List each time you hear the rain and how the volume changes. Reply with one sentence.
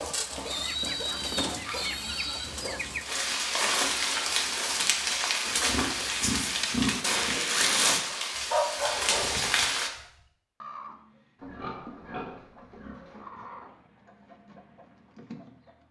You can hear the rain from 0.0 to 9.9 s, getting louder.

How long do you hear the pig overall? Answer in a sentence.
The pig can be heard for 6 seconds in total.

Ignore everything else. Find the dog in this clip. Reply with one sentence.
You can hear the dog from 8.1 to 9.3 s.